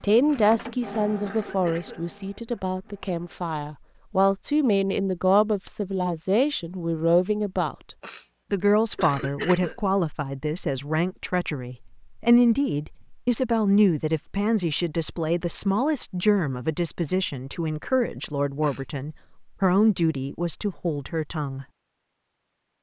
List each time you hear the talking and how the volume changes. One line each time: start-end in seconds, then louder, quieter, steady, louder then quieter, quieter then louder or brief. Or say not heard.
0.0-21.6 steady.